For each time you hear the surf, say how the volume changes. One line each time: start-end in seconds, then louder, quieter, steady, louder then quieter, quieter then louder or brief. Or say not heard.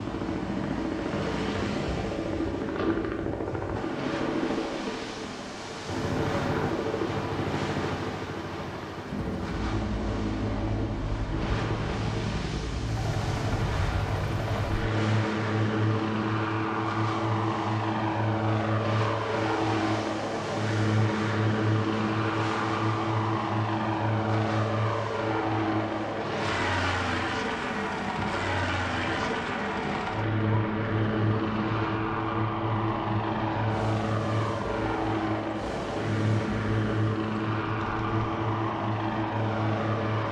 0.0-40.2 steady.